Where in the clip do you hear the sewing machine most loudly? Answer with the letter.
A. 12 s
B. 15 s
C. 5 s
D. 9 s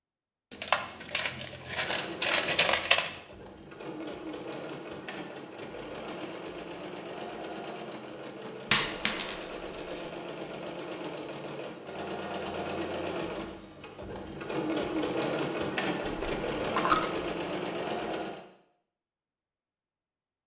B.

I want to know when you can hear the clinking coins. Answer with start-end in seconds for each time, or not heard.
0.5-3.1, 8.7-9.3, 16.0-17.2.